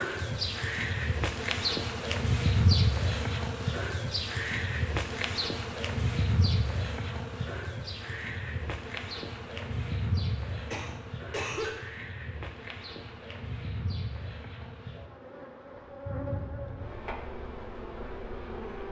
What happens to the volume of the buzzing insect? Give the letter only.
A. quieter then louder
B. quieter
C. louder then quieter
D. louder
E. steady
B.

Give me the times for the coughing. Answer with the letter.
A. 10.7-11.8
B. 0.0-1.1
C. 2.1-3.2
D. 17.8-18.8
A.